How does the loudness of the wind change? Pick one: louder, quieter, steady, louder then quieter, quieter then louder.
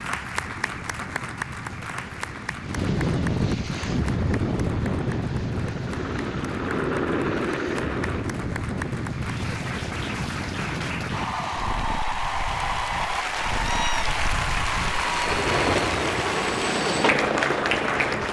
quieter then louder.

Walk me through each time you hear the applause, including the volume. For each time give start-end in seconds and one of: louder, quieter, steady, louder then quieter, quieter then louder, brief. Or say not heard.
0.0-18.2 quieter then louder.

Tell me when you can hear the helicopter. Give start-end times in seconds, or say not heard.
3.8-8.4, 14.8-18.2.